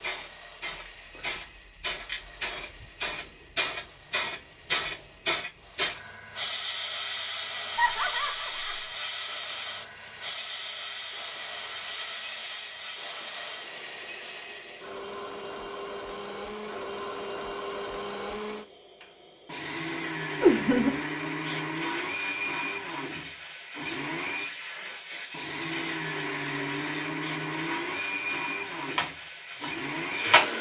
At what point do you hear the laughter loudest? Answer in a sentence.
The volume of the laughter peaks at 21 seconds.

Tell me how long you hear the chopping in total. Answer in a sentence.
The chopping can be heard for 2 seconds in total.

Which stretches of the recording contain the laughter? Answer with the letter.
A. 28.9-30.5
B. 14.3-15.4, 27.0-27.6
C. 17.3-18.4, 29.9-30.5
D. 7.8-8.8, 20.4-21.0
D.